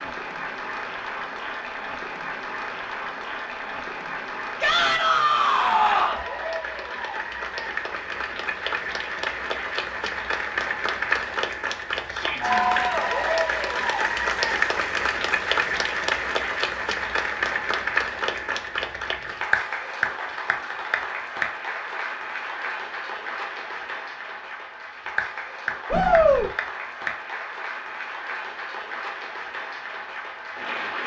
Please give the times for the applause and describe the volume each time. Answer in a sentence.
You can hear the applause from 0.0 to 31.0 s, getting louder then quieter.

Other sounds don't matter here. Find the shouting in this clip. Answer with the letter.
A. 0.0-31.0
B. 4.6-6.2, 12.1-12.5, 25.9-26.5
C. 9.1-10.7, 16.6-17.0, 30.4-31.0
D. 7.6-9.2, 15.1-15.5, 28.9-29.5
B.